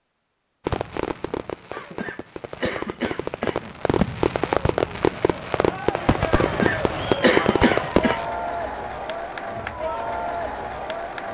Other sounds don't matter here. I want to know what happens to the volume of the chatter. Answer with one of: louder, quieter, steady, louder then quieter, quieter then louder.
steady.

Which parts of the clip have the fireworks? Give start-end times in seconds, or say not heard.
0.7-8.3.